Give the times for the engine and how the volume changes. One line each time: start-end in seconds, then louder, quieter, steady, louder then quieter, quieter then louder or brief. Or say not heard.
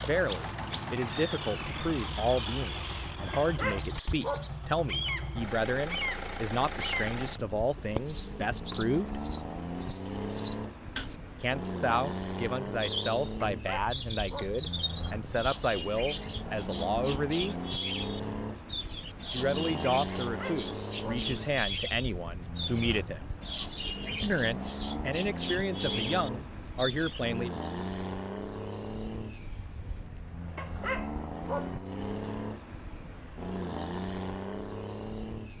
0.0-35.5 steady.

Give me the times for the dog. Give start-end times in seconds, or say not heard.
3.3-4.5, 13.6-14.6, 20.2-21.2, 30.6-31.8.